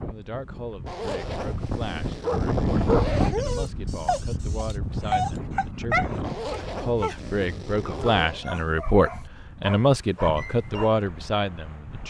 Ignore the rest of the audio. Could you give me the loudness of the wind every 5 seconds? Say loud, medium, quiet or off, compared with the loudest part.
loud, medium, quiet.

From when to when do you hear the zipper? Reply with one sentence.
You can hear the zipper from 0.8 to 3.4 s and from 6.2 to 8.4 s.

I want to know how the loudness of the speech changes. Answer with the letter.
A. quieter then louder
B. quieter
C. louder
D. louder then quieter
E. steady
C.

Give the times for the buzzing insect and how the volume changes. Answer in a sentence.
The buzzing insect can't be heard in this clip.